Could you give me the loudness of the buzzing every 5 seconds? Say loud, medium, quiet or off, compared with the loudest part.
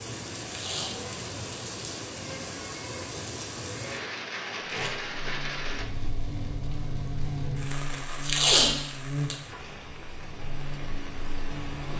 off, loud, medium.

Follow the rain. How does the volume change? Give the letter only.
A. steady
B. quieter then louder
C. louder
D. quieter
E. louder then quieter
D.